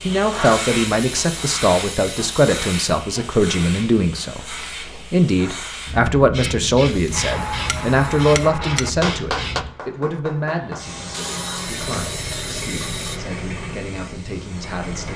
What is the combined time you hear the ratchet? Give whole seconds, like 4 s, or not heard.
not heard.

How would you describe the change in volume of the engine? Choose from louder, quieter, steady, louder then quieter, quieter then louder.
quieter.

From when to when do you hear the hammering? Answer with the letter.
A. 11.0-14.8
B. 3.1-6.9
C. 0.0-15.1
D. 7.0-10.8
D.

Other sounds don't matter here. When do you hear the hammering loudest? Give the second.
9 s.